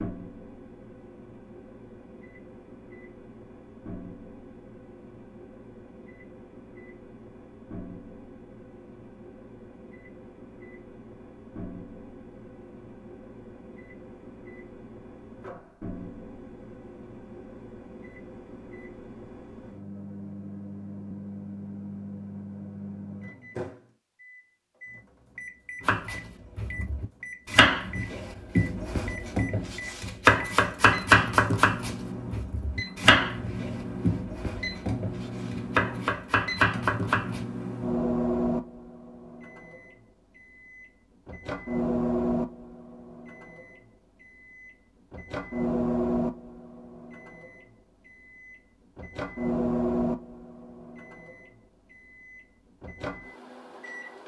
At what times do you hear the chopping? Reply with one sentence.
You can hear the chopping from 25.9 to 37.5 s.